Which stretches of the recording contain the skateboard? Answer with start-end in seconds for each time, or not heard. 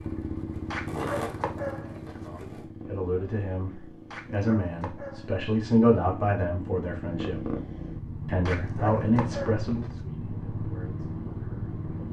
0.0-2.6.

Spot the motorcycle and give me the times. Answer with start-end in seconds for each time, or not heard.
0.0-12.0.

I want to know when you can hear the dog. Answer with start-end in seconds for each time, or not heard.
0.7-2.2, 4.1-5.4, 8.4-9.9.